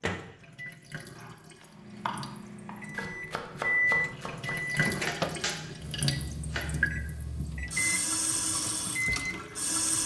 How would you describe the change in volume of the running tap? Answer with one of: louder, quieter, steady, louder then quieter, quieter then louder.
louder.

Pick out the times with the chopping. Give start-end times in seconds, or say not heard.
1.1-6.7.